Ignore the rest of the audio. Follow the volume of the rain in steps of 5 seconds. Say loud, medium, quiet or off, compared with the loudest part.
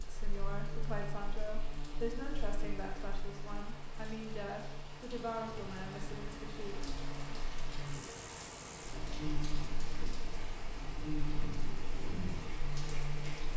medium, loud, loud.